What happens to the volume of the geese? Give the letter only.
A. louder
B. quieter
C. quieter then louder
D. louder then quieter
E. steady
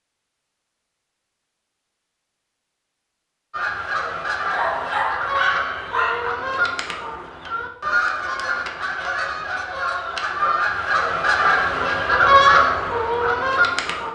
A.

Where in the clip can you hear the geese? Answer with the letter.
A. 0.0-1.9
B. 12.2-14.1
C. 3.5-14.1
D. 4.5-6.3
C.